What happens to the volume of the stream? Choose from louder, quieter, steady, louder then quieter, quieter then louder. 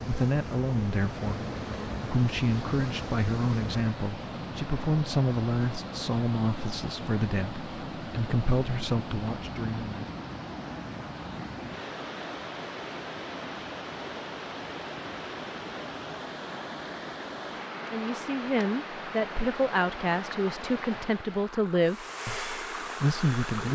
steady.